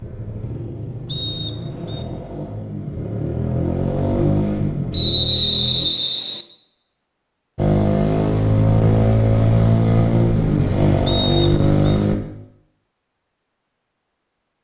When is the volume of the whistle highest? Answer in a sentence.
The loudest moment of the whistle is at 5 seconds.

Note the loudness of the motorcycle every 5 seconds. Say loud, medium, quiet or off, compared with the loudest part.
medium, loud, loud.